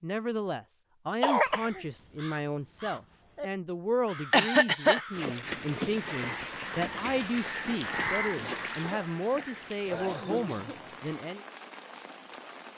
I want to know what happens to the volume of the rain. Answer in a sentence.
The volume of the rain goes down.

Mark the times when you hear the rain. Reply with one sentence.
The rain can be heard from 5.1 to 12.7 s.